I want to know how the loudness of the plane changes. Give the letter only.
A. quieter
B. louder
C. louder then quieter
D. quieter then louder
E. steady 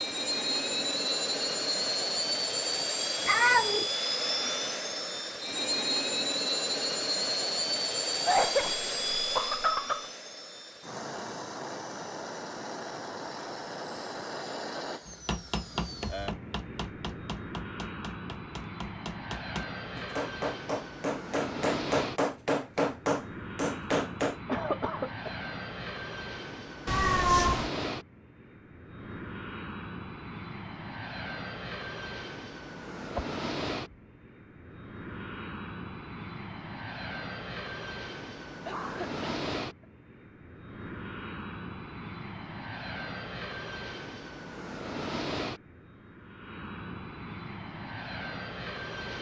A.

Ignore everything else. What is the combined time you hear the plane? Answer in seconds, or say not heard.
49 s.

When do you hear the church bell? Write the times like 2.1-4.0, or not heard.
not heard.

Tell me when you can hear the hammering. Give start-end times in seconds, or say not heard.
15.1-24.4.